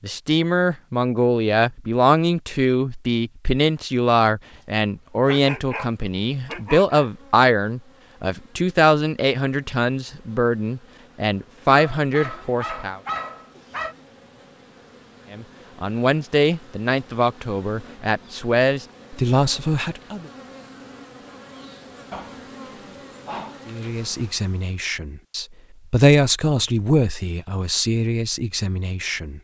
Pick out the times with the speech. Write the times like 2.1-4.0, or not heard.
0.0-13.0, 15.3-20.3, 23.6-29.3.